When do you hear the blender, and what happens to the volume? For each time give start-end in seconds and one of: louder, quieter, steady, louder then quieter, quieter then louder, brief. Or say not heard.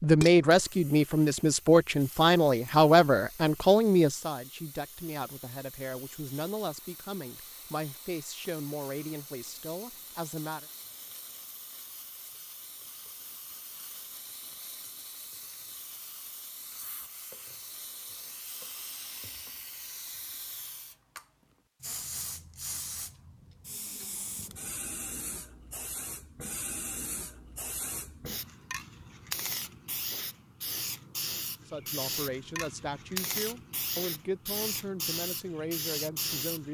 not heard.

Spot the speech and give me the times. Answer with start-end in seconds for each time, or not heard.
0.0-10.7, 31.6-36.7.